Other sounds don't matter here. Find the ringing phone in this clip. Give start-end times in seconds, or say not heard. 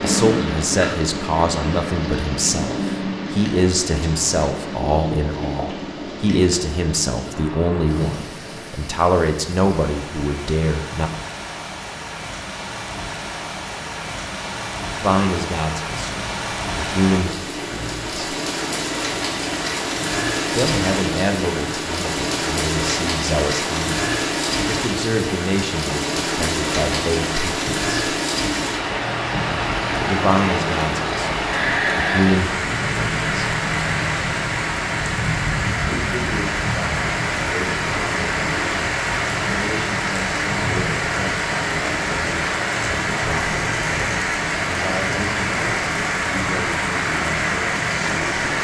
not heard.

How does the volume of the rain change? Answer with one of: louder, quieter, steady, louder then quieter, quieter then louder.
louder.